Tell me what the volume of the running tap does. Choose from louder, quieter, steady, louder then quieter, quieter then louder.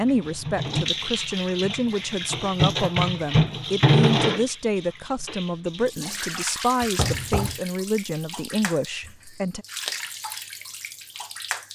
louder then quieter.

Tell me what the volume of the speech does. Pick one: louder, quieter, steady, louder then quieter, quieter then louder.
steady.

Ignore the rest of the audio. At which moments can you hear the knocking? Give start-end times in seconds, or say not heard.
6.8-7.6.